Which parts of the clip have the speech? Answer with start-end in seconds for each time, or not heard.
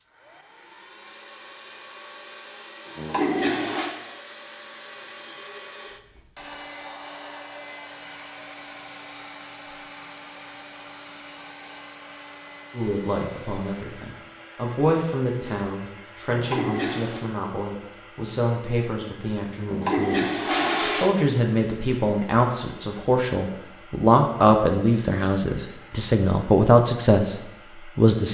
12.7-28.2.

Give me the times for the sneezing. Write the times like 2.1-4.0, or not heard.
not heard.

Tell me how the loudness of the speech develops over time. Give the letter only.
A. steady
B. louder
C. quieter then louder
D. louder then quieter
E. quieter
B.